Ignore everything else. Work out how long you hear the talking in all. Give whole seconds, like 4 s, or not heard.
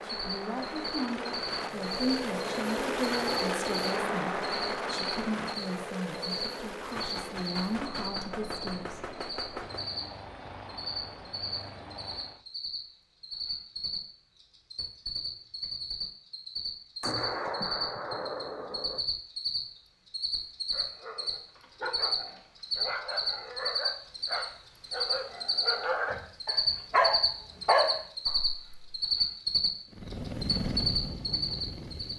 9 s.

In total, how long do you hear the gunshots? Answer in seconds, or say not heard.
5 s.